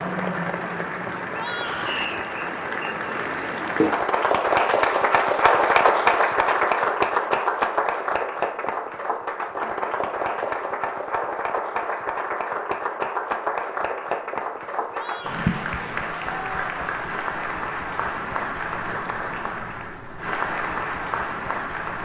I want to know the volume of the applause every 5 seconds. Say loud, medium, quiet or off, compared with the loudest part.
loud, loud, medium, medium, medium.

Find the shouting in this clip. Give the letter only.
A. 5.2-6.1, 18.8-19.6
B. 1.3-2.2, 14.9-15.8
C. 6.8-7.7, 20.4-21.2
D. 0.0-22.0
B.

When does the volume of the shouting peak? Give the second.
2 s.